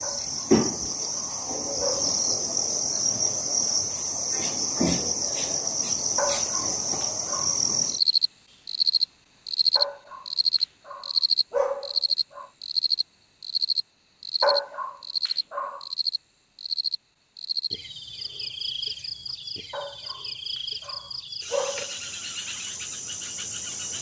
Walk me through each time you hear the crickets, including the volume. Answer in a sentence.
The crickets can be heard from 0.0 to 23.9 s, getting quieter.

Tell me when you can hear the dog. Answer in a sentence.
You can hear the dog from 0.0 to 2.2 s, from 6.2 to 7.6 s, from 9.8 to 10.2 s, from 10.8 to 12.4 s, from 14.4 to 15.8 s and from 19.7 to 21.9 s.